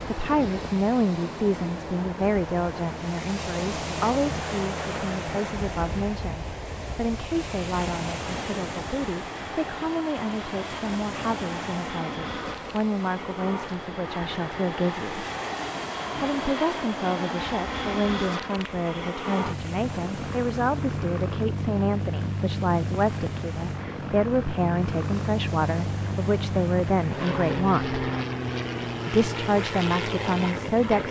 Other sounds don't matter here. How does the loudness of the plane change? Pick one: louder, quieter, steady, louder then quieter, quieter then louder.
louder.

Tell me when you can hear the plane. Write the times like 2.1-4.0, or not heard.
0.0-31.0.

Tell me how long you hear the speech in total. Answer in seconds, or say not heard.
29 s.